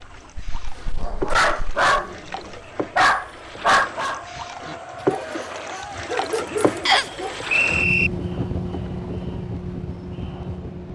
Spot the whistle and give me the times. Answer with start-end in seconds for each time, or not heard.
6.8-8.1.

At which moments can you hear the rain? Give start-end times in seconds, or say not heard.
not heard.